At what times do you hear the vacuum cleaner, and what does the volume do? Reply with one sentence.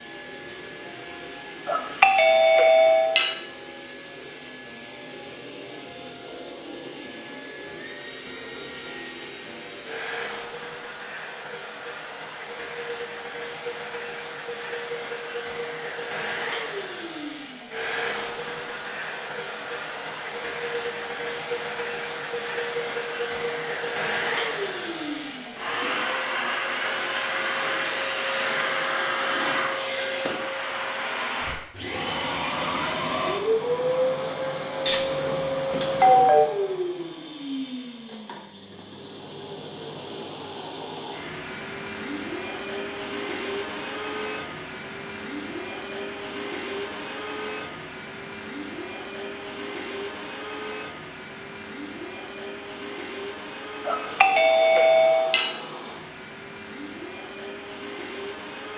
You can hear the vacuum cleaner from 0.0 to 58.7 s, getting louder then quieter.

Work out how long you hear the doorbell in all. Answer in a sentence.
You can hear the doorbell for 5 seconds altogether.